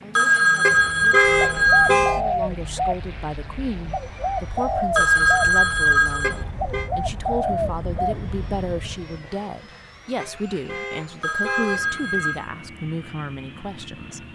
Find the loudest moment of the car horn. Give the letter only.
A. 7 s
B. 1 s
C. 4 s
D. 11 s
B.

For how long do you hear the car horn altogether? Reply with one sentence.
You can hear the car horn for 4 seconds altogether.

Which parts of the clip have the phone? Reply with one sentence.
The phone can be heard from 0.1 to 2.1 s, from 5.0 to 6.4 s and from 11.2 to 12.5 s.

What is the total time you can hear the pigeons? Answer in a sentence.
The pigeons can be heard for 7 seconds in total.